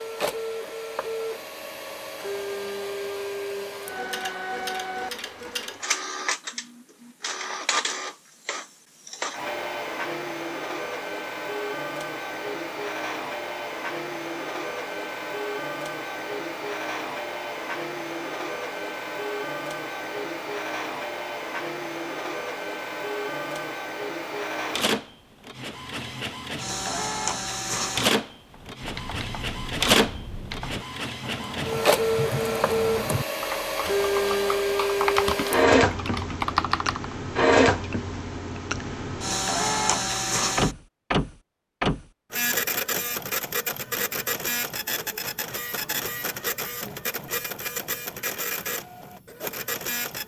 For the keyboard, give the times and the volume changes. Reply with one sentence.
You can hear the keyboard from 28.5 to 37.1 s, getting louder.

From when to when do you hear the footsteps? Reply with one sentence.
The footsteps can't be heard in this clip.